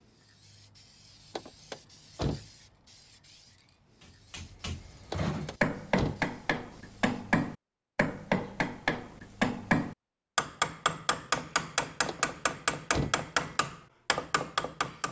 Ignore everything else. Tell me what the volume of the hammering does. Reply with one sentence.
The loudness of the hammering stays about the same.